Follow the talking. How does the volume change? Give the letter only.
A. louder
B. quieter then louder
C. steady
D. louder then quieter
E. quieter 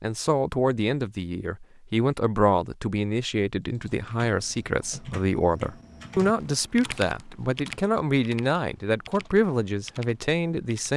C.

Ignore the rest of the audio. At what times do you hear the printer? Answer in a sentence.
You can't hear the printer here.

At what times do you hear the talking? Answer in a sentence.
The talking can be heard from 0.0 to 10.9 s.